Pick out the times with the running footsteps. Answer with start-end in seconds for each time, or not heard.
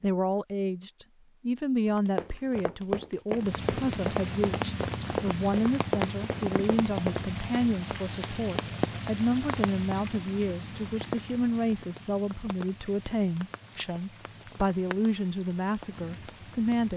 1.9-7.2.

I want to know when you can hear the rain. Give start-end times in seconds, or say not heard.
3.4-16.9.